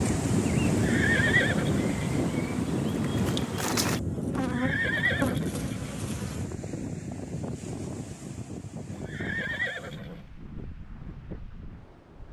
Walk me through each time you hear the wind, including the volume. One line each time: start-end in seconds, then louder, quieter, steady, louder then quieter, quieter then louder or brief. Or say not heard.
0.0-12.2 quieter.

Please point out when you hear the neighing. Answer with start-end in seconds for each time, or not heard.
0.7-2.1, 4.3-6.0, 8.9-10.2.